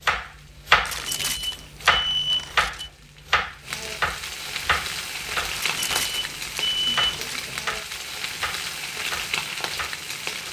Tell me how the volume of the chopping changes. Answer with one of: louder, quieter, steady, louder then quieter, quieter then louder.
quieter.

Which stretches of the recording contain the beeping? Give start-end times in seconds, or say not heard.
0.8-2.9, 5.5-7.4.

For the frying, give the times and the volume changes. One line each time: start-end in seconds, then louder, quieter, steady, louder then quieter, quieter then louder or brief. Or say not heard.
0.1-10.4 louder.